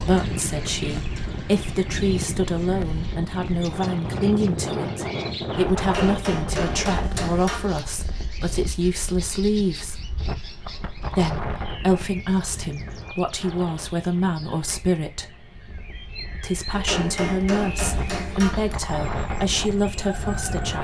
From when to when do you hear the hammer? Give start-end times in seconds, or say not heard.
5.8-7.8, 16.7-18.8.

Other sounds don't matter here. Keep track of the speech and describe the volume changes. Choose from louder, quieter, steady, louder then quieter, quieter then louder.
steady.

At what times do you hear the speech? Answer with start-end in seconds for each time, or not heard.
0.0-10.0, 11.1-15.3, 16.4-20.8.